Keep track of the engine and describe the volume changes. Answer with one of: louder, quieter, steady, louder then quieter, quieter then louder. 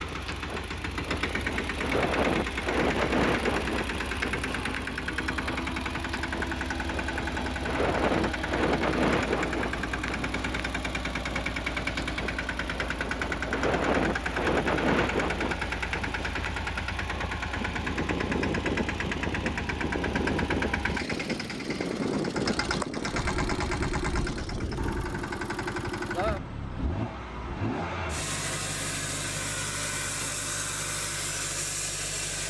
steady.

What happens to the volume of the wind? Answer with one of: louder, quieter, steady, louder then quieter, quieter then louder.
steady.